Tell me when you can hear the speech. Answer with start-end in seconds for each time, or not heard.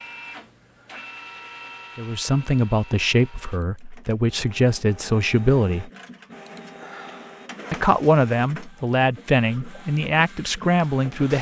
1.9-5.9, 7.7-11.3.